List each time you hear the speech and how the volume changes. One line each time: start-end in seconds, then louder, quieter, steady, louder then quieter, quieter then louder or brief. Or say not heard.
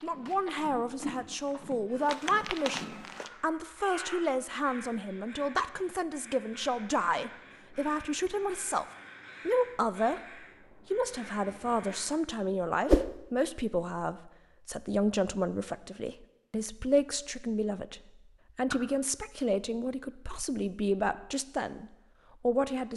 0.0-8.8 steady
9.4-10.2 brief
10.9-22.9 steady.